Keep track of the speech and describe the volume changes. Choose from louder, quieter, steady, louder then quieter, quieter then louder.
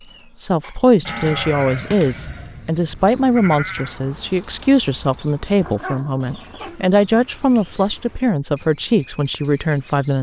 steady.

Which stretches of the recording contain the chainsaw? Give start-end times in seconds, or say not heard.
not heard.